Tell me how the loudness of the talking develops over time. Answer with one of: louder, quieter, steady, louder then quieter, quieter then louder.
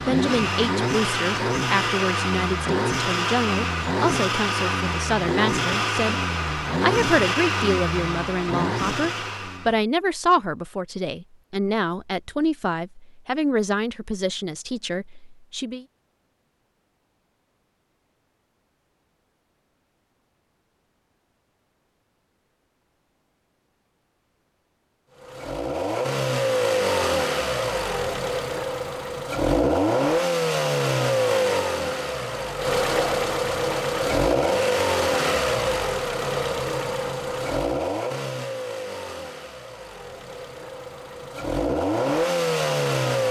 steady.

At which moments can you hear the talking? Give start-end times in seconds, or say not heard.
0.1-15.8.